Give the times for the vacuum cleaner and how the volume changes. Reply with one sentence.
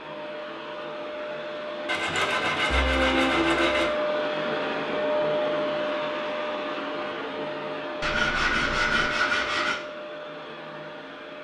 The vacuum cleaner can be heard from 0.0 to 11.3 s, getting louder then quieter.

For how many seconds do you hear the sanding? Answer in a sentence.
You can hear the sanding for 4 seconds altogether.